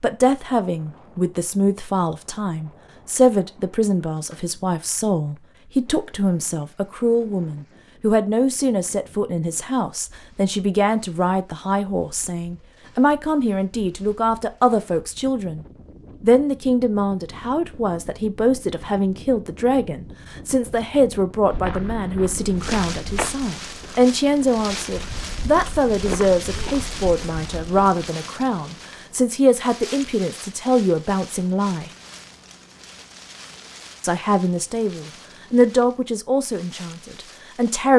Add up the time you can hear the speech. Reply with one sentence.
The speech can be heard for 36 seconds in total.